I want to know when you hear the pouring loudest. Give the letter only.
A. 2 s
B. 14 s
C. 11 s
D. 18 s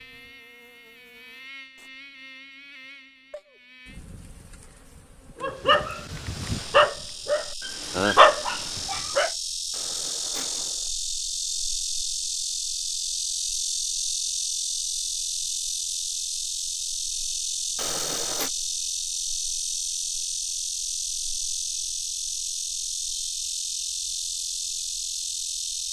D.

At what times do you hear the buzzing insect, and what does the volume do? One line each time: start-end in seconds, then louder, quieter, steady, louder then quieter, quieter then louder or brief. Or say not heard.
0.0-25.8 louder.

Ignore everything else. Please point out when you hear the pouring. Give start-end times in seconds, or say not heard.
9.7-10.9, 17.8-18.5.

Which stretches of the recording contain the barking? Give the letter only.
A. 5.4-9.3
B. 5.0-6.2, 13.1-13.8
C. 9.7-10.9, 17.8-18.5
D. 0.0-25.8
A.